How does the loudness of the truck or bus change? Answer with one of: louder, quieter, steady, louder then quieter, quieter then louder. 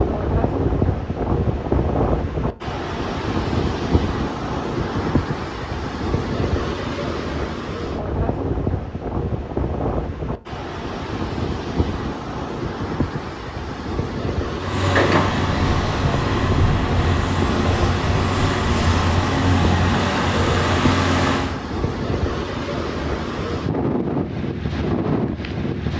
steady.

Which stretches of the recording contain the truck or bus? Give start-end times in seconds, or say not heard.
14.6-21.6.